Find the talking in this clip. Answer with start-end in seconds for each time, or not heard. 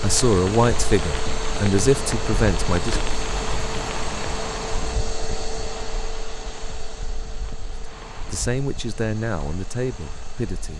0.0-3.0, 8.3-10.7.